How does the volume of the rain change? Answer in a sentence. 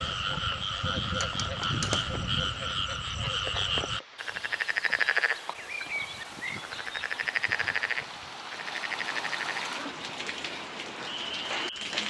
The volume of the rain goes up.